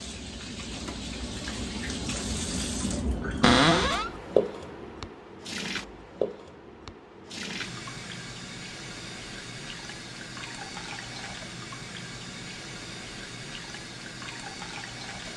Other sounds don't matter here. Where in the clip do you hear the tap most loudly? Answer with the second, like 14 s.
4 s.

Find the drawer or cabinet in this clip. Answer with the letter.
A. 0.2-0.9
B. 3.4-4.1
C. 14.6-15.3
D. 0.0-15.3
B.